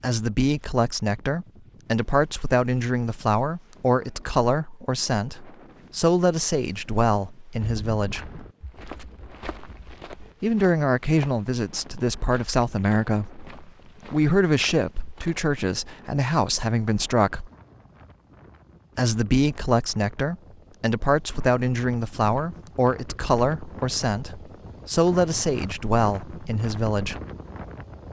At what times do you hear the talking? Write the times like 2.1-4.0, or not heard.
0.0-8.2, 10.4-13.4, 14.1-17.5, 18.9-27.2.